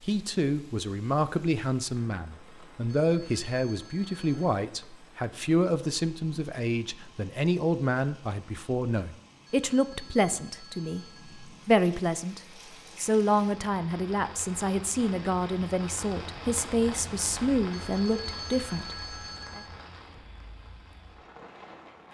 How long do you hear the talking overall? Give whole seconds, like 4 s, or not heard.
19 s.